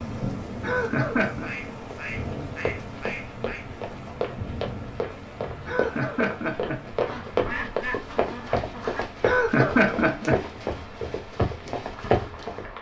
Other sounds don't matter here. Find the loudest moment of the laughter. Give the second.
10 s.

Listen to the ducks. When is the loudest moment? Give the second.
8 s.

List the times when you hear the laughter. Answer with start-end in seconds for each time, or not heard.
0.6-1.5, 5.7-6.8, 9.2-10.4.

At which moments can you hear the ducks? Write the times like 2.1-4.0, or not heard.
1.3-3.7, 7.0-9.1.